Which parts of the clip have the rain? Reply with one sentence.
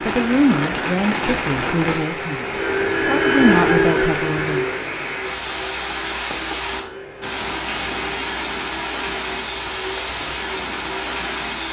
The rain can be heard from 0.0 to 11.6 s.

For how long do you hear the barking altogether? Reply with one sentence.
The barking can't be heard in this clip.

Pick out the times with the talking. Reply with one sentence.
The talking can be heard from 0.1 to 4.7 s.